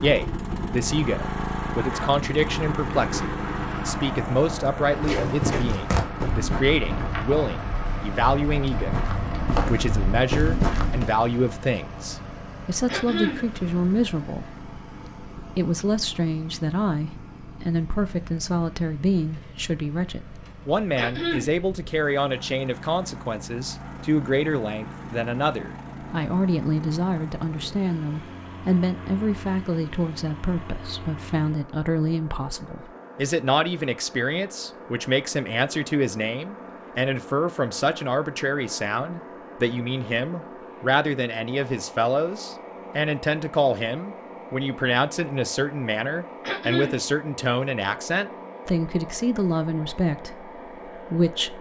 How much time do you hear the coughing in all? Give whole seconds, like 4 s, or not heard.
2 s.